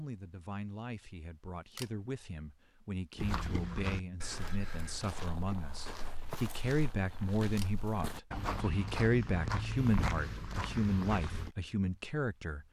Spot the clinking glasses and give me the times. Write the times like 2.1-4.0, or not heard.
not heard.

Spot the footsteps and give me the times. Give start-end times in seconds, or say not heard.
3.1-11.6.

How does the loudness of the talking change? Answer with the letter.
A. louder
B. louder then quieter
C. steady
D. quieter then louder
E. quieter
A.